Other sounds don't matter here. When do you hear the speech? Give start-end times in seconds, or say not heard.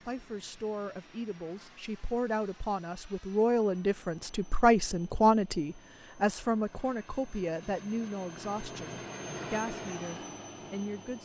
0.1-11.2.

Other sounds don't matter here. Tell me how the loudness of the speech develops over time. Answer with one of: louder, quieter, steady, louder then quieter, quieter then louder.
louder then quieter.